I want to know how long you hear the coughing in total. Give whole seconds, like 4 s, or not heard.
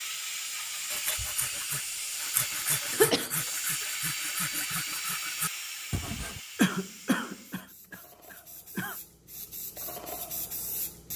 3 s.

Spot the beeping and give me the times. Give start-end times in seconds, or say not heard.
not heard.